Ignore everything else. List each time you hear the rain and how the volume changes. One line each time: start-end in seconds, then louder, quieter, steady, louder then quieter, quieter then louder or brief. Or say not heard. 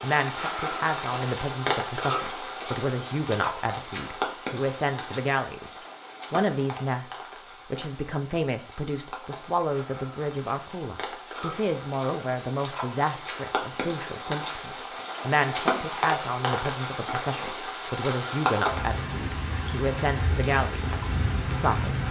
0.0-22.0 quieter then louder.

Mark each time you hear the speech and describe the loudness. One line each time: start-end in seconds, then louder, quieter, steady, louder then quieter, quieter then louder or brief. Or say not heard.
0.0-22.0 steady.